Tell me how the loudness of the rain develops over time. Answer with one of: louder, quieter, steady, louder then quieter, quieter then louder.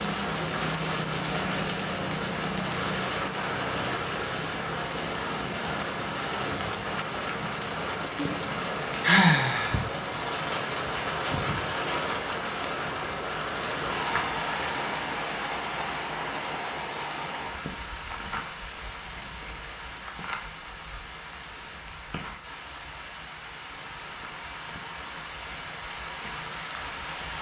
quieter.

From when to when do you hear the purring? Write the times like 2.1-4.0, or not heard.
not heard.